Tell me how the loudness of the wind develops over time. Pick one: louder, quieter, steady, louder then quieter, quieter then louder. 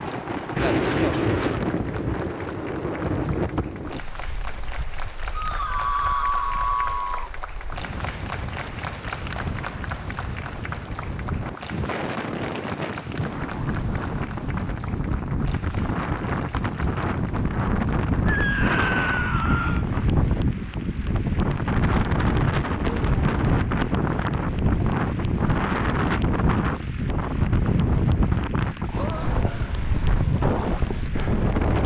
quieter then louder.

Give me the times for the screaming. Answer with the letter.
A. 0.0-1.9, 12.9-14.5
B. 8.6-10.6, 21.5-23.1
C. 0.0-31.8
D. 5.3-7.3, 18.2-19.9
D.